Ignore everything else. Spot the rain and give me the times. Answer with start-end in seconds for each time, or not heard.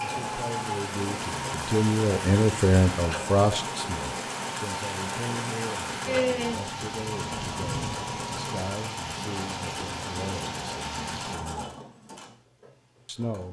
0.0-11.3.